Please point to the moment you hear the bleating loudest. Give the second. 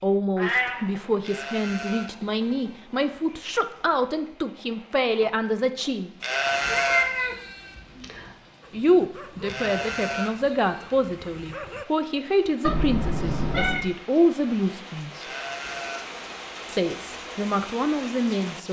7 s.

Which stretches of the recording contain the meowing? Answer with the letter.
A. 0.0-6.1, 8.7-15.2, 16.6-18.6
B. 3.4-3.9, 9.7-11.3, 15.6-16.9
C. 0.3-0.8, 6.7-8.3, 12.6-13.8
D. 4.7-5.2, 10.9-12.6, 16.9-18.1
C.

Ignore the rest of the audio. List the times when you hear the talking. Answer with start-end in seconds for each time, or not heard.
0.0-6.1, 8.7-15.2, 16.6-18.6.